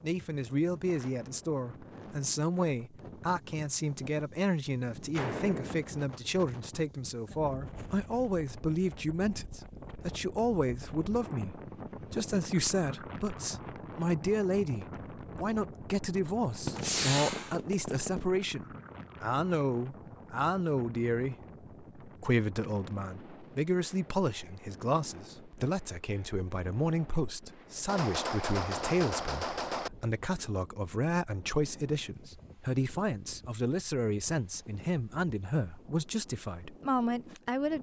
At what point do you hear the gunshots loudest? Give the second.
17 s.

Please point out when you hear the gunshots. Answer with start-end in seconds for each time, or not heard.
5.1-5.8, 16.6-18.2, 27.9-29.9.